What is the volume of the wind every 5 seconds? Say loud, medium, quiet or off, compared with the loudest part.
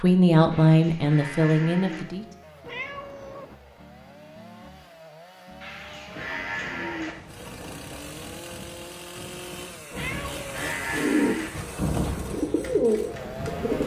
off, medium, loud.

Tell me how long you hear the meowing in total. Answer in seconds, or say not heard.
2 s.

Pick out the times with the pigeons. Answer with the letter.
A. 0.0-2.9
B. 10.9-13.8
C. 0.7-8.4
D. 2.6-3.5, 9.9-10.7
B.